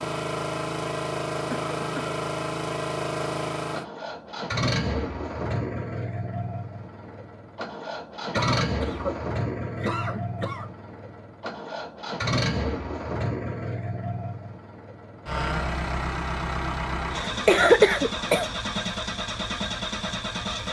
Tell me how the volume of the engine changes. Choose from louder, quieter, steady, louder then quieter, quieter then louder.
steady.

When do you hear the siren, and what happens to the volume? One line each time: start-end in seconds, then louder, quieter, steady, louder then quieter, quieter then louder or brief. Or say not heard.
not heard.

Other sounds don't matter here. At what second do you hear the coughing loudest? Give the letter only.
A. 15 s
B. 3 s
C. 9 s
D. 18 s
D.